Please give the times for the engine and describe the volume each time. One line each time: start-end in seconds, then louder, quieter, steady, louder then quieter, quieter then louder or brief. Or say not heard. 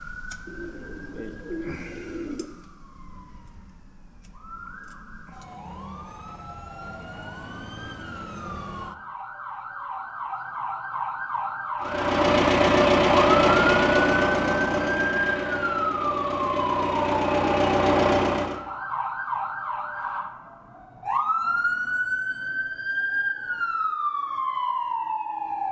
11.8-18.6 quieter then louder.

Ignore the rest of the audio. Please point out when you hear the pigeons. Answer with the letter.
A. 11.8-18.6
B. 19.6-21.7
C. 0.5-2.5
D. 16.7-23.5
C.